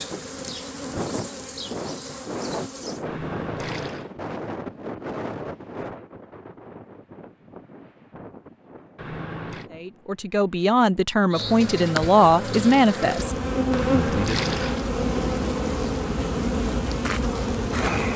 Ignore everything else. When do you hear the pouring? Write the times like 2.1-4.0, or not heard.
3.0-4.1, 8.9-9.7, 13.7-14.8.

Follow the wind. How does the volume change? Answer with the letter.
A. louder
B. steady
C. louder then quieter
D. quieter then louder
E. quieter
E.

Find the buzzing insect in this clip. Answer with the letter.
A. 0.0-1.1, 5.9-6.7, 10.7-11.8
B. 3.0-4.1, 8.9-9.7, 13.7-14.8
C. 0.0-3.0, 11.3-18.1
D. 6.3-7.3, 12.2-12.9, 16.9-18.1
C.